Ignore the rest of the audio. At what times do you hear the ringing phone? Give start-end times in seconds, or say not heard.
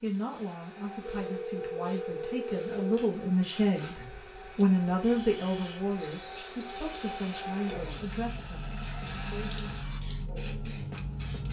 1.1-2.9.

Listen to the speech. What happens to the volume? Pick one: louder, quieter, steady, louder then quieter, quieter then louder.
louder then quieter.